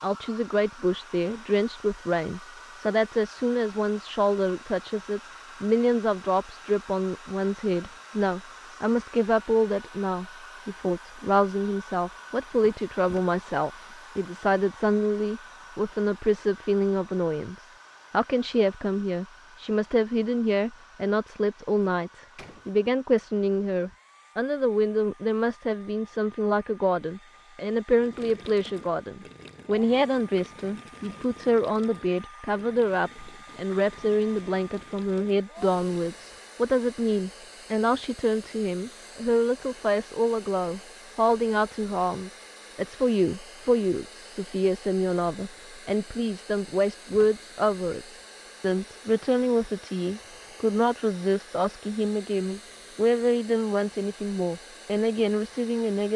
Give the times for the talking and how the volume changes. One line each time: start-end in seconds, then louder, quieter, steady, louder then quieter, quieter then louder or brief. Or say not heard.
0.0-56.1 steady.